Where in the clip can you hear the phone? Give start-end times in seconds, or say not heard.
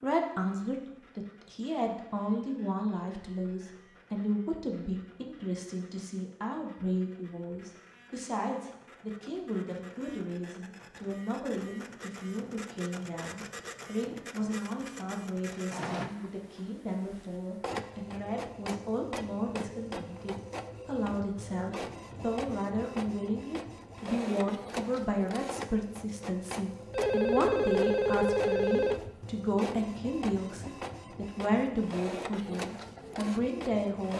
26.9-29.1.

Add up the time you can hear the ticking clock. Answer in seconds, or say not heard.
not heard.